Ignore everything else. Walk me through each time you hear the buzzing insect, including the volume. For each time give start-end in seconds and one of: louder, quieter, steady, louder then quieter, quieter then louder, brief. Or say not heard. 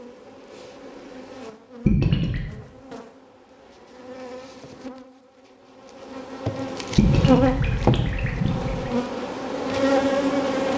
0.0-10.7 louder.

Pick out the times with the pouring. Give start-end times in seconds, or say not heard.
1.9-2.5, 7.0-8.9.